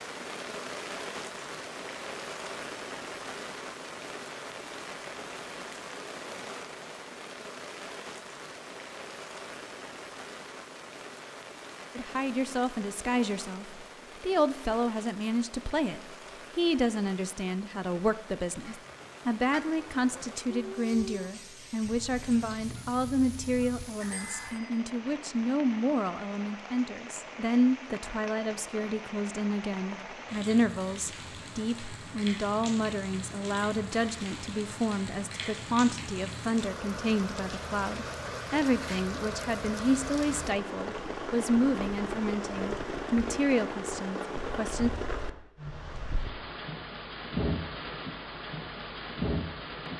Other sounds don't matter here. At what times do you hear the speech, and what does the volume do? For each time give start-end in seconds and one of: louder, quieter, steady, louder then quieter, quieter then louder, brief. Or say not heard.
11.9-44.9 steady.